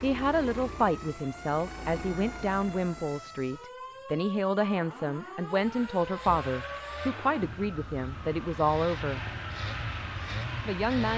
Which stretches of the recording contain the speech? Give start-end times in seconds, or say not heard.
0.0-9.2, 10.7-11.1.